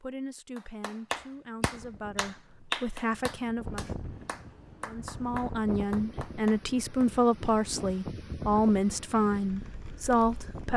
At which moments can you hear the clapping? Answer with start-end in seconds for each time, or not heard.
0.6-7.1.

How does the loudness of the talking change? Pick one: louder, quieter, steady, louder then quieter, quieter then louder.
louder.